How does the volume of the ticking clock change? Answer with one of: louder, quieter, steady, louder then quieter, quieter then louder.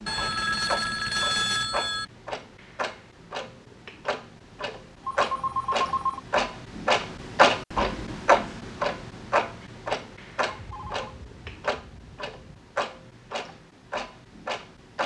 louder then quieter.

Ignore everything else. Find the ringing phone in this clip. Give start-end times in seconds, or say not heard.
0.1-2.0, 5.0-6.2, 10.4-12.7.